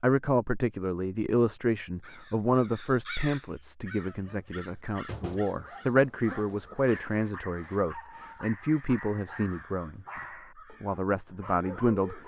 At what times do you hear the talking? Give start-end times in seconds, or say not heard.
0.0-10.1, 10.8-12.2.